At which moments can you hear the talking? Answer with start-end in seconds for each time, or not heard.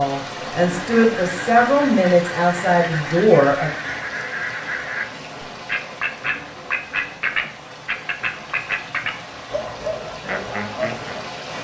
0.0-3.7.